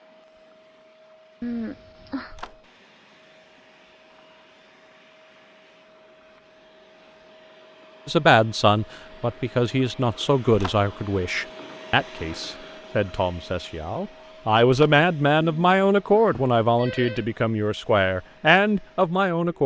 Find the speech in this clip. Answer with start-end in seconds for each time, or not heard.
8.1-19.6.